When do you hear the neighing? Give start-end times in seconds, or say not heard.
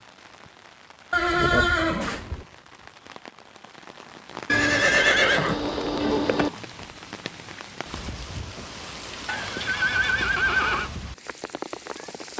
1.1-2.5, 4.5-6.5, 9.2-10.9.